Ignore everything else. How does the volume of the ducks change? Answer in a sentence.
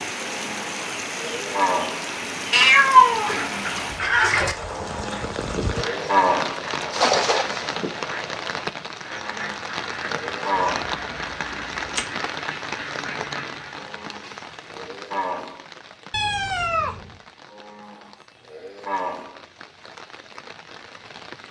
The loudness of the ducks stays about the same.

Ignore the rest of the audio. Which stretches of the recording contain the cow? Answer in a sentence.
The cow can be heard from 0.1 to 2.1 s, from 4.7 to 6.7 s, from 9.1 to 10.9 s, from 13.8 to 15.7 s and from 17.5 to 19.4 s.